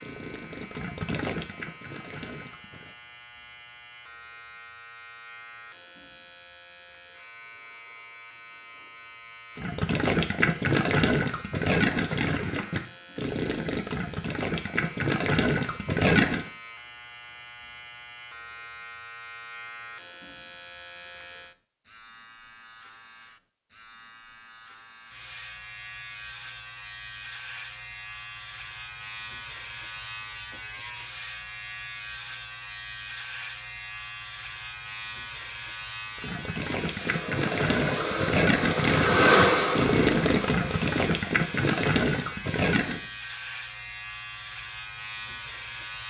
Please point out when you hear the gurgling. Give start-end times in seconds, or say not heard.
0.0-3.0, 9.6-16.4, 36.1-43.0.